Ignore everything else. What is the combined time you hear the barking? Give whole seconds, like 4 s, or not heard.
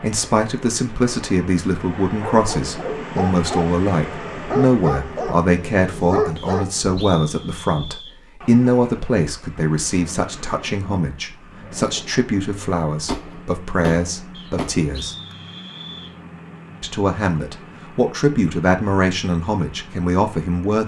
5 s.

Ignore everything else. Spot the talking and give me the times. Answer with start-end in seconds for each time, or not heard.
0.0-15.2, 16.8-20.8.